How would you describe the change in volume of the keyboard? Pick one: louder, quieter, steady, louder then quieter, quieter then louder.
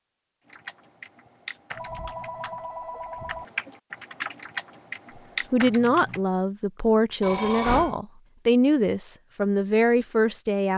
quieter then louder.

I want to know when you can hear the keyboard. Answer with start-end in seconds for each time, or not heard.
0.5-6.2.